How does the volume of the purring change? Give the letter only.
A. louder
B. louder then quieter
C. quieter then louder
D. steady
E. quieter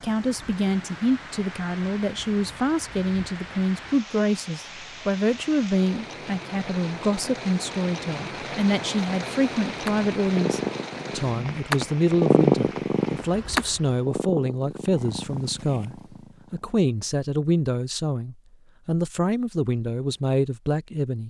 B.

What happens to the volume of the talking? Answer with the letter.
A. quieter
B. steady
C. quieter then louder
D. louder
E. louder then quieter
B.